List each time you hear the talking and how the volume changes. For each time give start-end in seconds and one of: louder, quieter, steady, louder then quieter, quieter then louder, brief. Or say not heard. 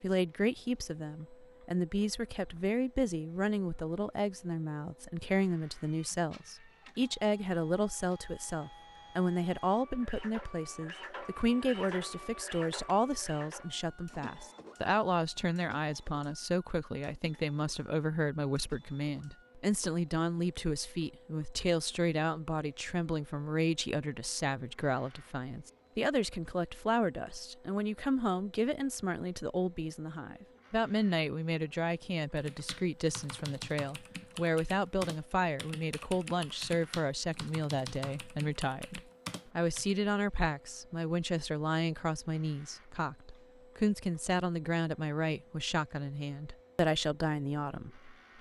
0.0-48.1 steady.